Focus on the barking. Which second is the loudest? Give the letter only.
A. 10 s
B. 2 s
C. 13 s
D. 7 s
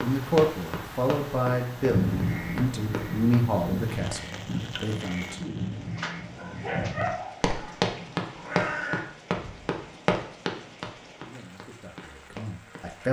D.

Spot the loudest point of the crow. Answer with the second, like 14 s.
2 s.